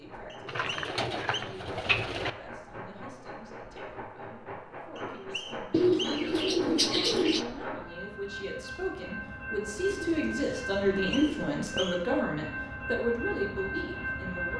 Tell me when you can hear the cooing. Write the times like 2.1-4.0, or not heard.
0.5-2.3, 5.7-7.5, 9.9-11.9.